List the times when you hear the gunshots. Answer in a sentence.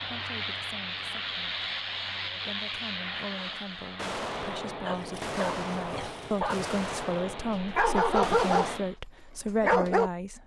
The gunshots can be heard from 4.0 to 8.8 s.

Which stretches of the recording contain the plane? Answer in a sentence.
You can hear the plane from 0.0 to 9.0 s.